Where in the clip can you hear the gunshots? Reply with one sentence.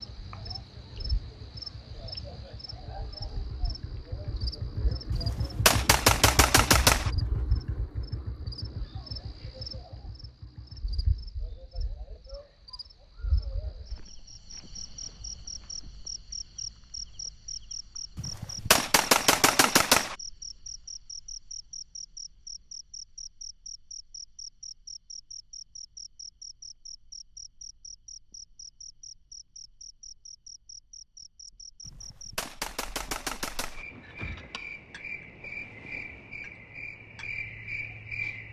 You can hear the gunshots from 5.1 to 7.1 s, from 18.1 to 20.1 s and from 31.9 to 33.9 s.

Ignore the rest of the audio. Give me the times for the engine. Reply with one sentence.
The engine can be heard from 0.0 to 11.3 s.